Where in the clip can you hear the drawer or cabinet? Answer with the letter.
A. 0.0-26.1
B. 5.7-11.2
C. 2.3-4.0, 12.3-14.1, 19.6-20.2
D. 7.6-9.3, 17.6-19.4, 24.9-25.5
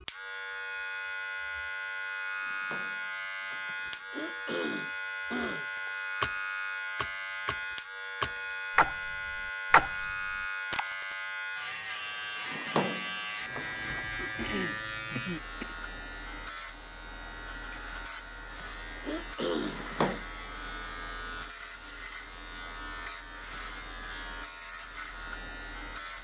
C.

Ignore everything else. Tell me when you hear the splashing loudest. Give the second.
10 s.